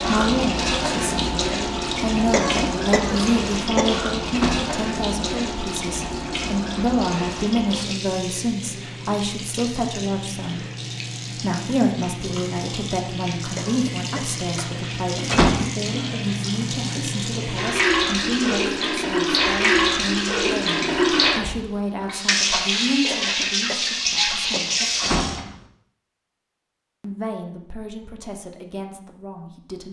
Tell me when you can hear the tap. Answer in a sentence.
The tap can be heard from 0.0 to 25.4 s.